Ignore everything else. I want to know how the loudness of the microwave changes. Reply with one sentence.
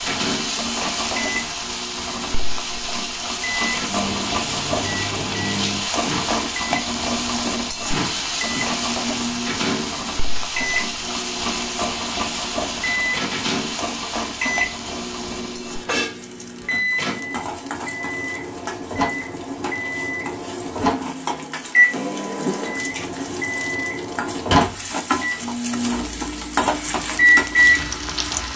The loudness of the microwave goes up.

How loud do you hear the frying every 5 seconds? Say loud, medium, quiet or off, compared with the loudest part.
loud, loud, loud, medium, medium, loud.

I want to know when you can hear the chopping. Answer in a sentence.
The chopping can't be heard in this clip.